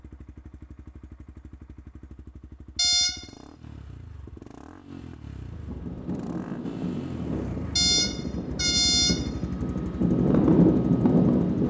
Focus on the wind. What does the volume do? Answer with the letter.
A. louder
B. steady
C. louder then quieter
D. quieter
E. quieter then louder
A.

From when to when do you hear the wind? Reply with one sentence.
You can hear the wind from 5.4 to 11.6 s.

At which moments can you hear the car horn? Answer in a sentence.
The car horn can be heard from 2.8 to 3.2 s and from 7.8 to 9.2 s.